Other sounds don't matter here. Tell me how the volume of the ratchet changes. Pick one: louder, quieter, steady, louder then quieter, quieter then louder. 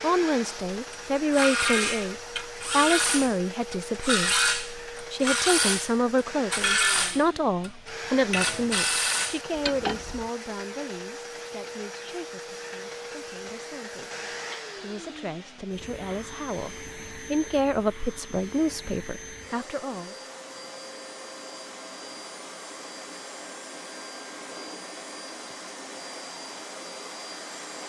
steady.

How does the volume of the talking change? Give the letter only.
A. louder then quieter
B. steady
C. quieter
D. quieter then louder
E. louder
D.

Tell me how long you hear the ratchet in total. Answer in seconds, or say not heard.
9 s.